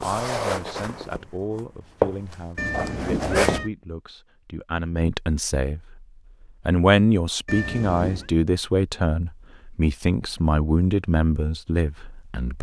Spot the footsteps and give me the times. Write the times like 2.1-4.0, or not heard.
0.0-3.6.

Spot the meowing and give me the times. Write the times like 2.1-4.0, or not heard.
2.5-3.7, 7.5-8.3.